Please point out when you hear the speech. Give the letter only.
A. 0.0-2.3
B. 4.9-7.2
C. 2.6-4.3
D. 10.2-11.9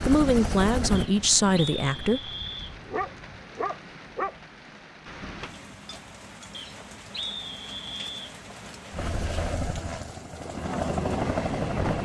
A.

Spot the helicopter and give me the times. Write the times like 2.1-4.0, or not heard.
0.0-2.1, 8.9-11.9.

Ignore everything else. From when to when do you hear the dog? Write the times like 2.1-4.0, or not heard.
2.6-4.3.